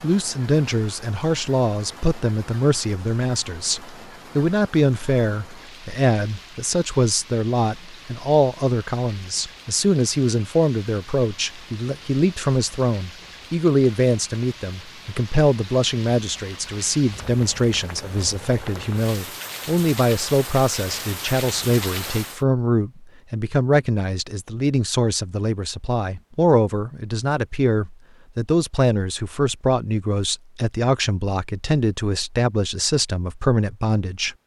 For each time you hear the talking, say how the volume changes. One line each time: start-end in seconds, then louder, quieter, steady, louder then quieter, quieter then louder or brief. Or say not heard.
0.0-34.4 steady.